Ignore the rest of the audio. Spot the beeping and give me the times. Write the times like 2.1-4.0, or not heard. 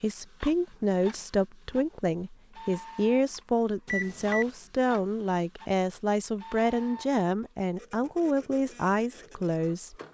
3.9-4.5.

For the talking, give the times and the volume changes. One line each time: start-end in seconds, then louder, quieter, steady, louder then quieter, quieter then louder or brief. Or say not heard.
0.0-9.9 steady.